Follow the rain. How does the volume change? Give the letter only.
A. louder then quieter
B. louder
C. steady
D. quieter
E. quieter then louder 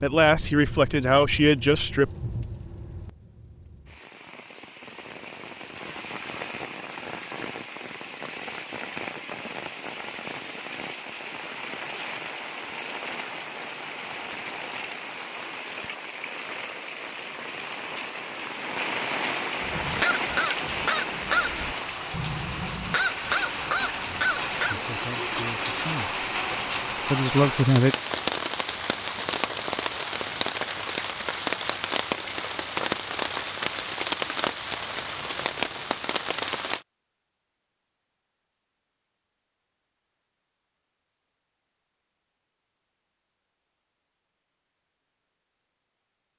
B.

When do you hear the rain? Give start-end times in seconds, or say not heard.
0.0-36.9.